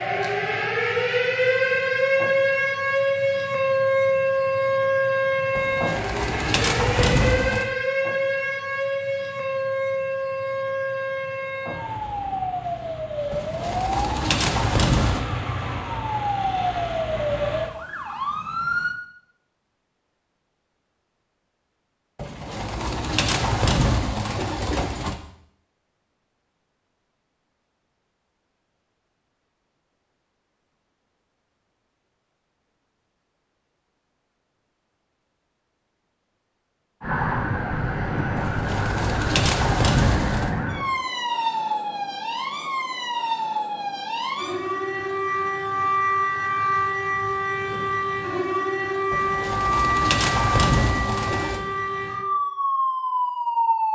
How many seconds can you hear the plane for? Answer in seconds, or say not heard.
not heard.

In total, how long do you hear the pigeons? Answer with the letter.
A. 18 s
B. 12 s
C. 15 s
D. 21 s
B.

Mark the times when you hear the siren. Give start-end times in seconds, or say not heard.
0.0-18.9, 37.0-53.9.